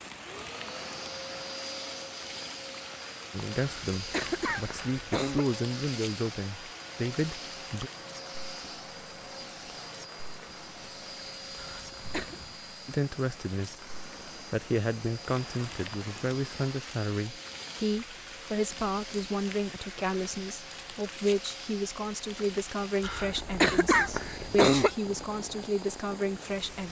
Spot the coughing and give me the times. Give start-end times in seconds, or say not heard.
3.5-5.5, 11.6-12.3, 23.0-24.9.